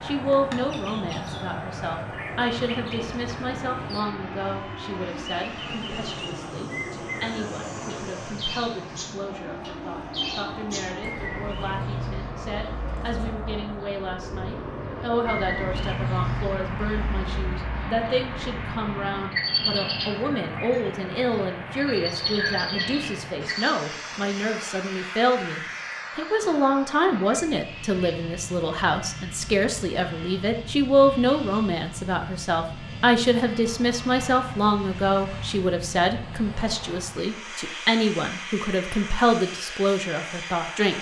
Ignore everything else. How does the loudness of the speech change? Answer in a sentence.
The volume of the speech goes up.